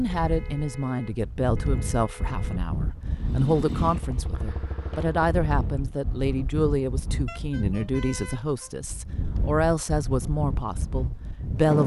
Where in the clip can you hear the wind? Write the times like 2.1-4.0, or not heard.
0.0-11.8.